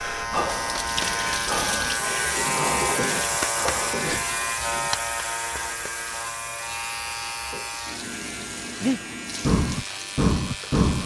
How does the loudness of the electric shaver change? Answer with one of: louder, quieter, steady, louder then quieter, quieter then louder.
quieter.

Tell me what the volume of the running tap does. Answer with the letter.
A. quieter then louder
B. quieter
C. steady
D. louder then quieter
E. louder
B.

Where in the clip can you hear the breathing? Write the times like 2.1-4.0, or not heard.
0.0-4.2, 8.8-11.0.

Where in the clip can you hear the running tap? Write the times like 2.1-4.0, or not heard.
0.0-11.0.